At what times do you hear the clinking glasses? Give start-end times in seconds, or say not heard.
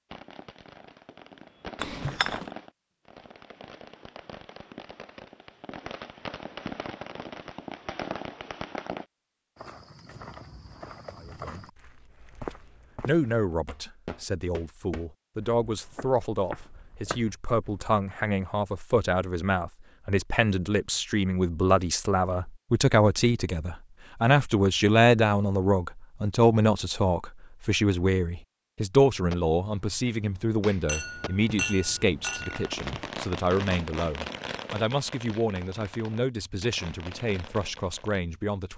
1.8-2.5, 30.9-33.1.